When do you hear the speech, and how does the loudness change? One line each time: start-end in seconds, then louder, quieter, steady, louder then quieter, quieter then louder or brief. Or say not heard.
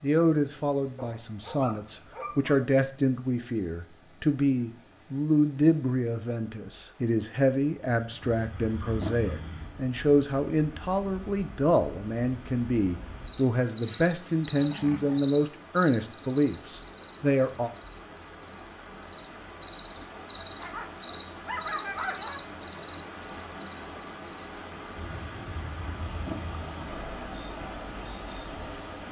0.0-17.7 steady.